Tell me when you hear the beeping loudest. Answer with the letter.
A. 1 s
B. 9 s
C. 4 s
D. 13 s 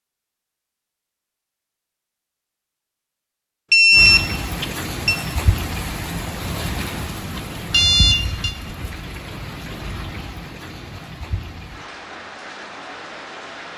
C.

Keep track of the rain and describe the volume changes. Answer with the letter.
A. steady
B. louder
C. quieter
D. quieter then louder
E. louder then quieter
C.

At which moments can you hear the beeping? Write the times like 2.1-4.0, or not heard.
3.7-5.2, 7.7-8.6.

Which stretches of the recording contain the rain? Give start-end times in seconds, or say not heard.
3.9-13.7.